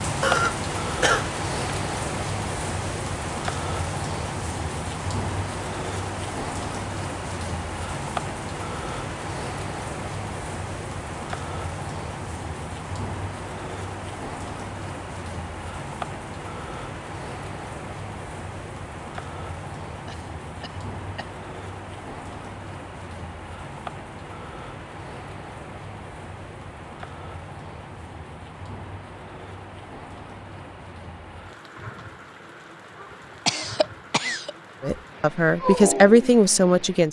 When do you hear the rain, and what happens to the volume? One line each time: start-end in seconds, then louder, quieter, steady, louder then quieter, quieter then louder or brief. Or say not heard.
0.0-37.0 quieter.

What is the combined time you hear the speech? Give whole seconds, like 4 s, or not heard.
2 s.